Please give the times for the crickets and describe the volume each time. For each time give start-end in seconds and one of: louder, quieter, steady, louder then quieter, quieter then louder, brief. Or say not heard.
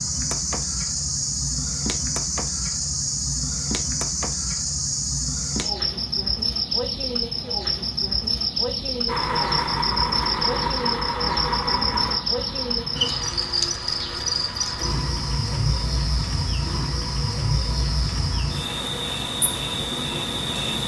0.0-20.8 steady.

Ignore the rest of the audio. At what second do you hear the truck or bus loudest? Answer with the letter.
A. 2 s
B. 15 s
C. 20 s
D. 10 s
D.